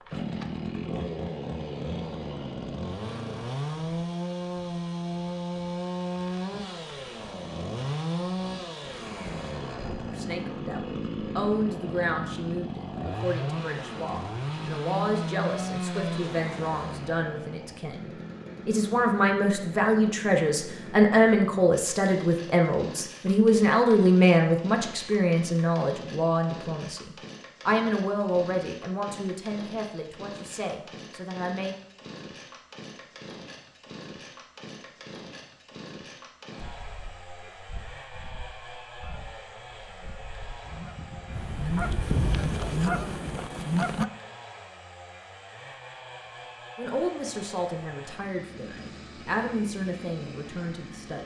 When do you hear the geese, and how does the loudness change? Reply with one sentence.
You can hear the geese from 36.5 to 44.0 s, getting louder.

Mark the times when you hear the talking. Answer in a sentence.
You can hear the talking from 10.1 to 31.8 s and from 46.8 to 51.2 s.